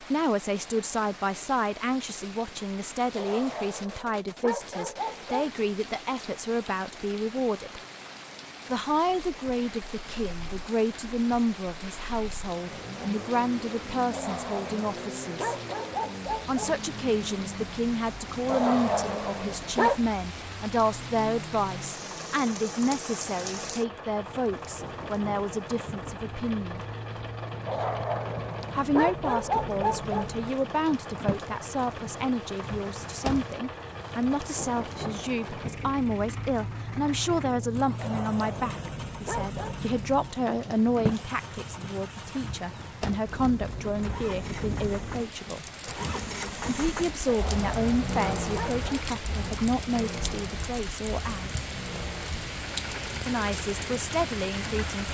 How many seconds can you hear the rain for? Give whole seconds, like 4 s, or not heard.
55 s.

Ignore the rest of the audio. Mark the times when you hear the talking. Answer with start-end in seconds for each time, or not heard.
0.0-7.8, 8.7-15.6, 16.4-26.8, 28.8-45.6, 46.6-51.5, 53.2-55.1.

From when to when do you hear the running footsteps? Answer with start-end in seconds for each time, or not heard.
not heard.